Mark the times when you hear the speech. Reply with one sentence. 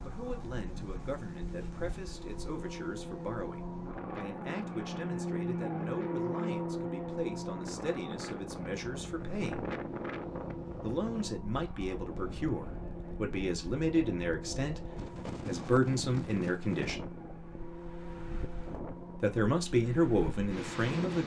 The speech can be heard from 0.0 to 9.7 s, from 10.8 to 17.1 s and from 19.2 to 21.2 s.